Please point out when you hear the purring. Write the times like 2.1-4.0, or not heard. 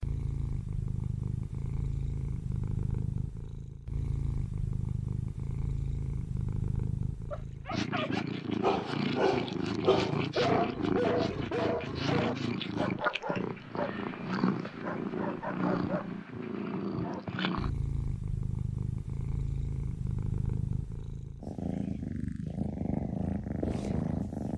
0.0-24.5.